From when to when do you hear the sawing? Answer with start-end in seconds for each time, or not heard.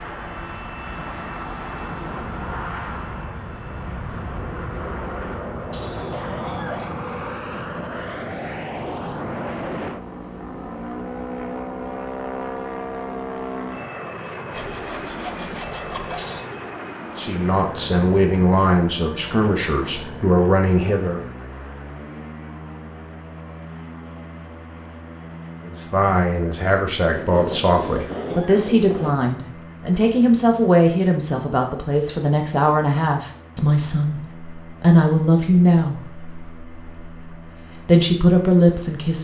14.5-16.4, 27.1-29.1.